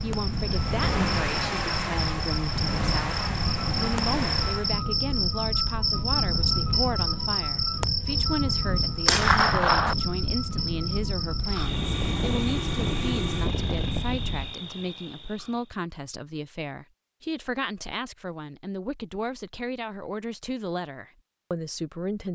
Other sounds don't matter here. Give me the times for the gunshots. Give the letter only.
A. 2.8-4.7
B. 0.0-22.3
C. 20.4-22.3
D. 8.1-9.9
D.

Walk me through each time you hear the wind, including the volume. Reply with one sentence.
You can hear the wind from 0.0 to 14.6 s, at a steady volume.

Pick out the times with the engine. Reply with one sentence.
The engine can be heard from 0.0 to 4.8 s and from 11.4 to 14.1 s.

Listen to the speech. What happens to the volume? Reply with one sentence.
The volume of the speech stays about the same.